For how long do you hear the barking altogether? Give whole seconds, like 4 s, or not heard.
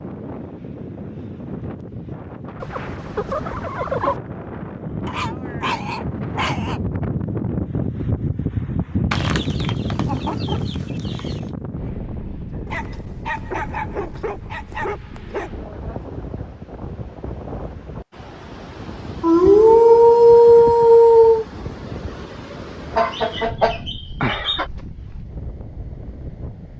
7 s.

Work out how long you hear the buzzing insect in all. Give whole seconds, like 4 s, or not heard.
not heard.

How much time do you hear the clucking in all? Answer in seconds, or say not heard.
6 s.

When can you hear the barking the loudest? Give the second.
20 s.